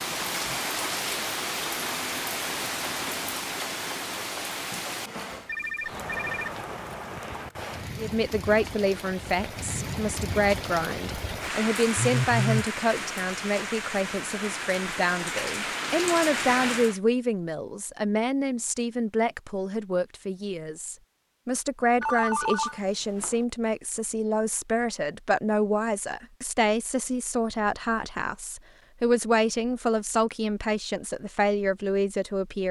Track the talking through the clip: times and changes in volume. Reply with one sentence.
The talking can be heard from 8.0 to 32.6 s, at a steady volume.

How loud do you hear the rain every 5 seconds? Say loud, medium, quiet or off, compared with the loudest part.
loud, medium, loud, loud, off, off, off.